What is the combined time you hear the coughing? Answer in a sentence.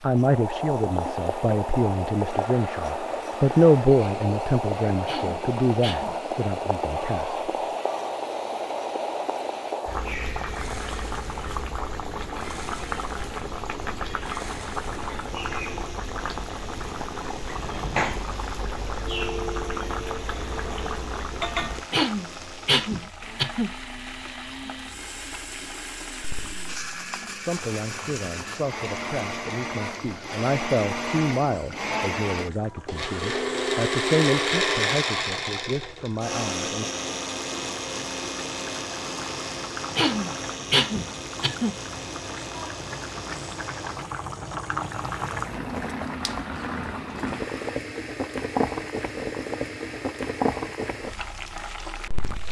You can hear the coughing for 5 seconds altogether.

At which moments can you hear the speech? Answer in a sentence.
You can hear the speech from 0.0 to 7.4 s and from 27.4 to 36.9 s.